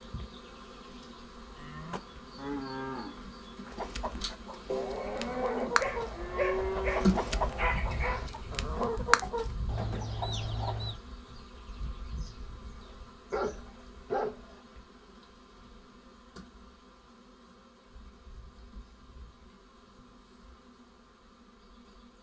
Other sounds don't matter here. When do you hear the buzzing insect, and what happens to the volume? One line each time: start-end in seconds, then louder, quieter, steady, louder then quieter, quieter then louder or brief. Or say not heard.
0.0-22.1 louder then quieter.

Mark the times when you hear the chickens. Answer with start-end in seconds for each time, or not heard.
3.7-10.9.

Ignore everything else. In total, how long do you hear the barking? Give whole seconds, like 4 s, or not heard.
4 s.